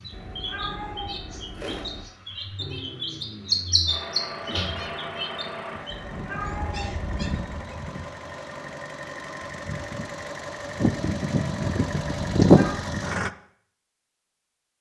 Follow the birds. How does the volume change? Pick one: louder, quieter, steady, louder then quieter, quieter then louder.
louder then quieter.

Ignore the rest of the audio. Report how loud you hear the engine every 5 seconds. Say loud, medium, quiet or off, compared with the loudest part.
quiet, quiet, loud.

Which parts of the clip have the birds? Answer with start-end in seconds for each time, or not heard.
0.0-7.8.